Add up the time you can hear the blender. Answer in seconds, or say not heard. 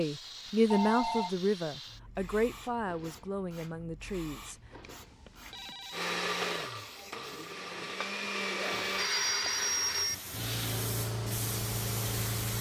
3 s.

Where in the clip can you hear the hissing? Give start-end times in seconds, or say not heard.
0.0-12.5.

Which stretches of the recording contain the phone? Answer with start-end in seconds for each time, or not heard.
0.7-1.3, 4.8-6.7, 8.7-10.2.